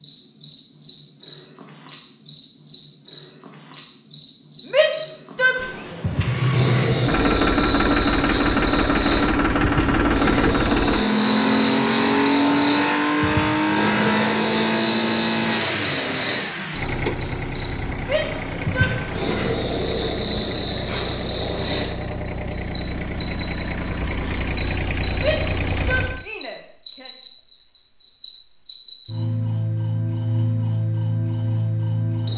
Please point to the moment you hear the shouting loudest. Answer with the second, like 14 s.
5 s.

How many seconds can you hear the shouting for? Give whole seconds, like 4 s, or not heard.
4 s.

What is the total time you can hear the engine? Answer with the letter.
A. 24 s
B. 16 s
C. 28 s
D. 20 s
D.